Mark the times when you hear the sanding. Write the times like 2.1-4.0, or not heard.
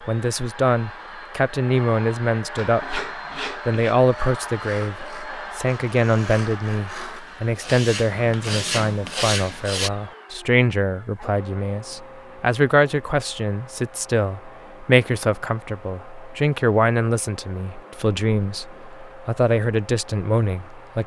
2.5-9.9.